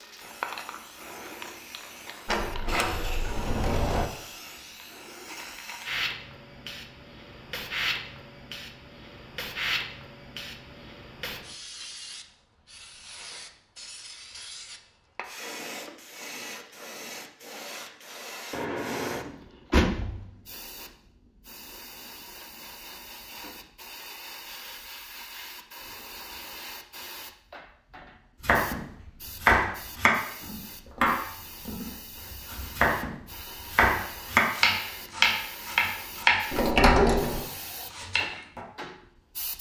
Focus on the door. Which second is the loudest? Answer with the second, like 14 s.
37 s.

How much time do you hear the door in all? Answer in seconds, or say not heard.
4 s.